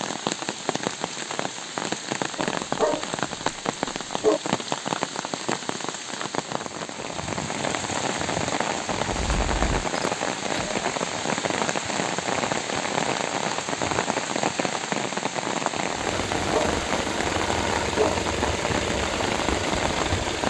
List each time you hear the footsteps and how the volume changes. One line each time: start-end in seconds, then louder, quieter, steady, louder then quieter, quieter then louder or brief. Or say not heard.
not heard.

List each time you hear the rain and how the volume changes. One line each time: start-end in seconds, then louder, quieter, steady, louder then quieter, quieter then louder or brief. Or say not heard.
0.0-20.4 steady.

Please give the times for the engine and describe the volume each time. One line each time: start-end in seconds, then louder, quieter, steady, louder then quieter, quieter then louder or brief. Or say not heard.
9.1-10.9 brief
15.9-20.4 steady.